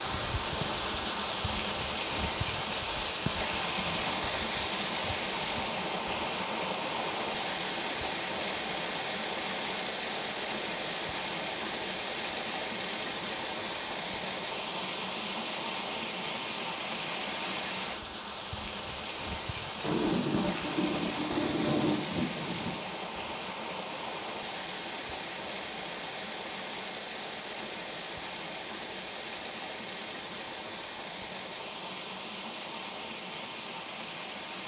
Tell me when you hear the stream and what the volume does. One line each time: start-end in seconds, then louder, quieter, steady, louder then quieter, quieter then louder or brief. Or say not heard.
0.0-34.6 quieter.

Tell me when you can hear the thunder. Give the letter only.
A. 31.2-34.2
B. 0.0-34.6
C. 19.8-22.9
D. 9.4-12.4
C.